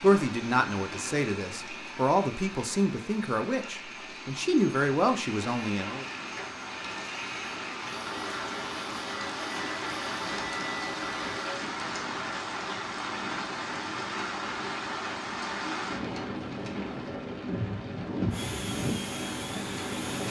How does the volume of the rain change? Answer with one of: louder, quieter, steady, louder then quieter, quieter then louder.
louder.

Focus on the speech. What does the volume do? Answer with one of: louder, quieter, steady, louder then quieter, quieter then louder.
steady.